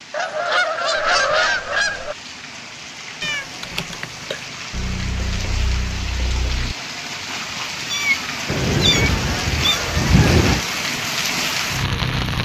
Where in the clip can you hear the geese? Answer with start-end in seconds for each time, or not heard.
0.1-2.1, 4.7-6.8, 8.4-10.6.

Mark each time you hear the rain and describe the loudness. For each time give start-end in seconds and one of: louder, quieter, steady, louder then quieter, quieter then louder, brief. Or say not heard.
0.0-12.3 louder.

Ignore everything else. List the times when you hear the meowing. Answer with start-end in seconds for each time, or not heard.
3.2-4.5, 7.8-9.8.